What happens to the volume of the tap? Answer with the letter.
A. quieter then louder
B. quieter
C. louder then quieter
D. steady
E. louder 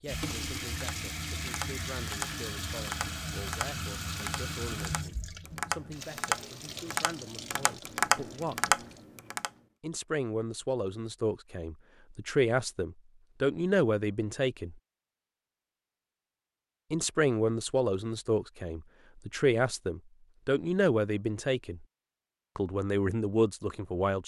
B.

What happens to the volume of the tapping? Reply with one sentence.
The loudness of the tapping goes up.